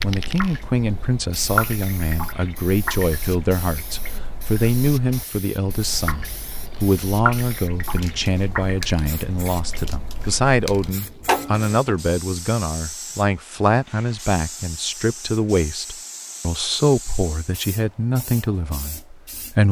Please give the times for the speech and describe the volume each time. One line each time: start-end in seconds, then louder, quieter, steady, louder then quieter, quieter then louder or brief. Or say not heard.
0.0-19.6 steady.